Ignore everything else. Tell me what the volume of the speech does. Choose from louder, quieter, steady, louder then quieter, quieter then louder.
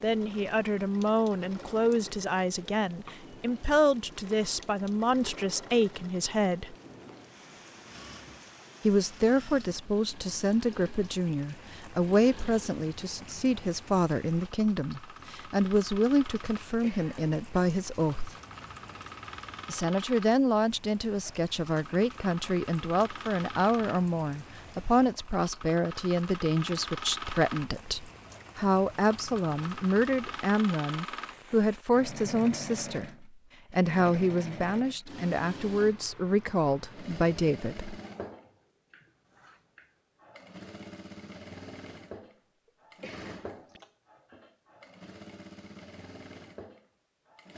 steady.